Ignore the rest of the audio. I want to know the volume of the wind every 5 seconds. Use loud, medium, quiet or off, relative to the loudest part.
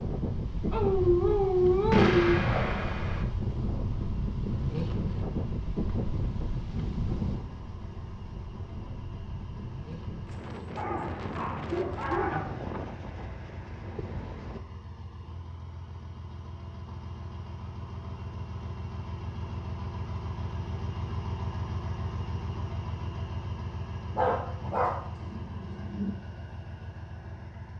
loud, loud, medium, off, off, off.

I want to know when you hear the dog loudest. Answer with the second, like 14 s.
2 s.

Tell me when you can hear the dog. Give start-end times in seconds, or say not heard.
0.7-2.4, 10.8-12.4, 24.1-26.1.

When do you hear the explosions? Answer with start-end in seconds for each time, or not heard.
1.9-3.2.